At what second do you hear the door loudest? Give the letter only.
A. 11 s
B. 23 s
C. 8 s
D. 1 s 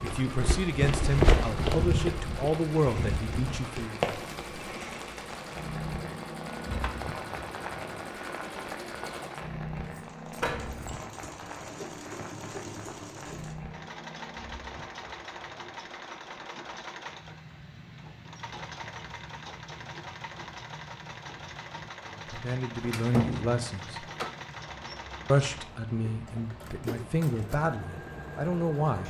B.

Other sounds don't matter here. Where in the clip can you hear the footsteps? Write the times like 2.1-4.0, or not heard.
0.0-4.5.